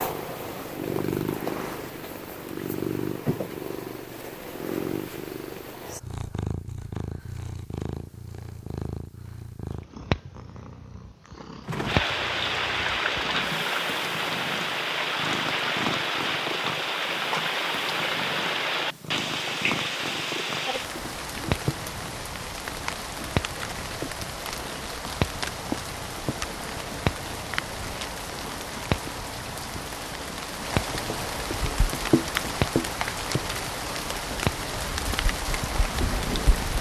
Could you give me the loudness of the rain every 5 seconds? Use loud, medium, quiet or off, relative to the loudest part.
off, off, loud, loud, medium, medium, loud, loud.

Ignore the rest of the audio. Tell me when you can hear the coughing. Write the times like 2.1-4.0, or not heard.
not heard.